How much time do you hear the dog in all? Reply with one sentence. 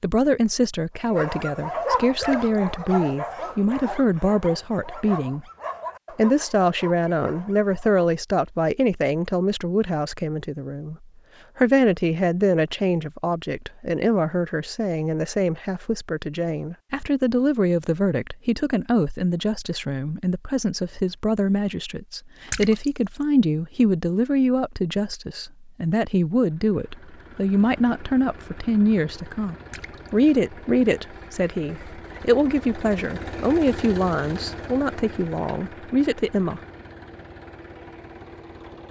The dog can be heard for 7 seconds in total.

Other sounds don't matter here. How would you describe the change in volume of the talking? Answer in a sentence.
The loudness of the talking stays about the same.